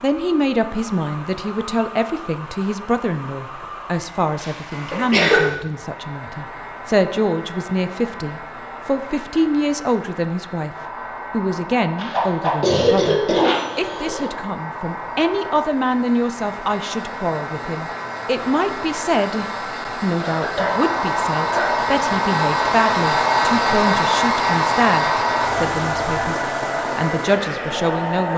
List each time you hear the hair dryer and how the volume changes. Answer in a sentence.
The hair dryer can be heard from 0.0 to 28.3 s, getting louder.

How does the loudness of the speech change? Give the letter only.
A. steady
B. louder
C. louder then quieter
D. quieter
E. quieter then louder
A.